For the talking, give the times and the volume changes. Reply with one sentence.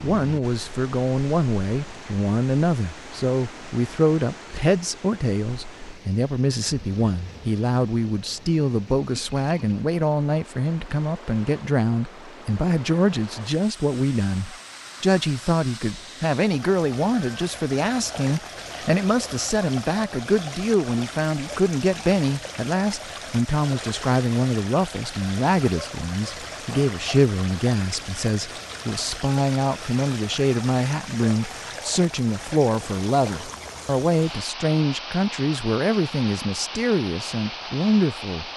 The talking can be heard from 0.0 to 38.5 s, at a steady volume.